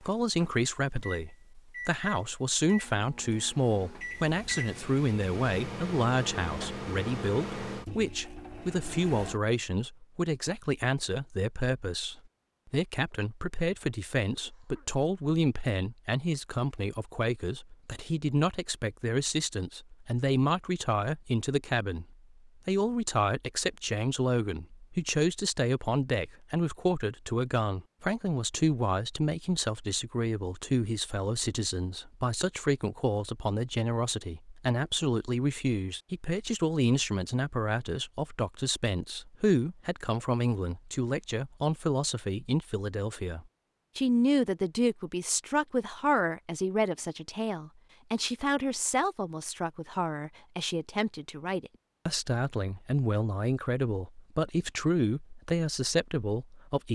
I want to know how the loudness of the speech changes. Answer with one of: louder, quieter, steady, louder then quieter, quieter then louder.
steady.